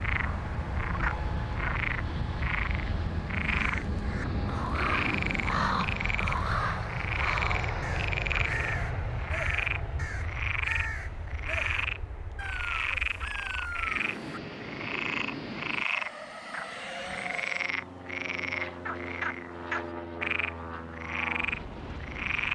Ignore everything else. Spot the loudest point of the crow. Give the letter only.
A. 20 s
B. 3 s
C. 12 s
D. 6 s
D.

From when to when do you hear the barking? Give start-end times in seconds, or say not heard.
not heard.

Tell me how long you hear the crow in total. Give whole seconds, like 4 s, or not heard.
11 s.